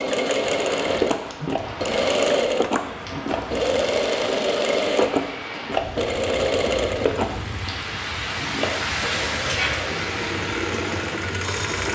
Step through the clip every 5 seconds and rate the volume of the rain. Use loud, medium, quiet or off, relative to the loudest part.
medium, loud, loud.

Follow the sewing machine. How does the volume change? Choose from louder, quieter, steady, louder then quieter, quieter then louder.
quieter.